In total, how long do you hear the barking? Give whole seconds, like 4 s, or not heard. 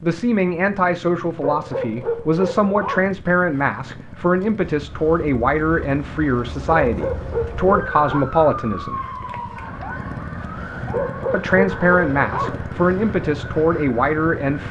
5 s.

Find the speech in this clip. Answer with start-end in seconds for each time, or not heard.
0.0-9.1, 11.3-14.6.